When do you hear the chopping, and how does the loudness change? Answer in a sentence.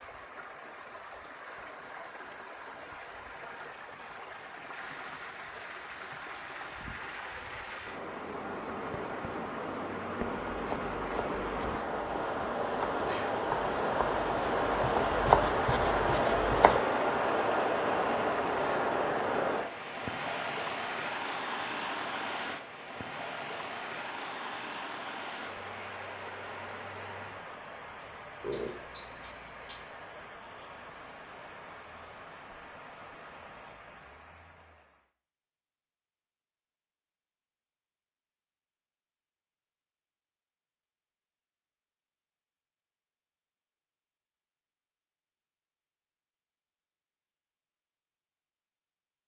The chopping can be heard from 10.4 to 16.8 s, getting louder.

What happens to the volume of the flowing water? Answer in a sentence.
The loudness of the flowing water goes up, then down.